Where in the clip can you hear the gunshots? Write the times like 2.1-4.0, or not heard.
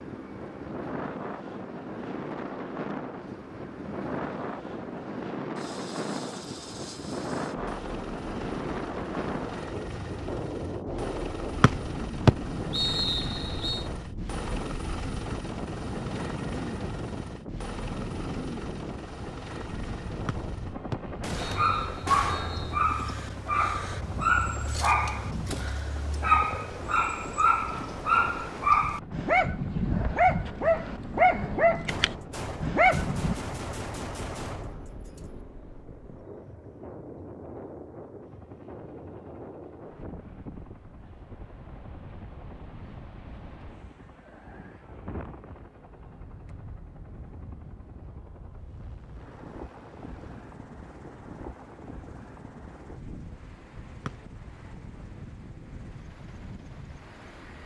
21.2-22.8, 31.9-35.5.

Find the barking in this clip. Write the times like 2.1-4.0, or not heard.
21.4-33.4.